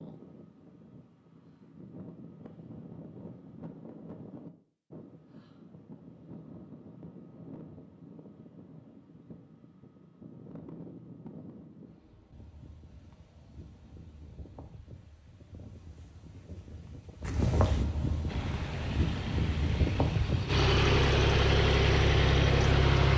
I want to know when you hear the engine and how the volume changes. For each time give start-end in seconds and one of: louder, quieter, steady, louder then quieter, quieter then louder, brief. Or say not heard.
18.2-23.1 louder.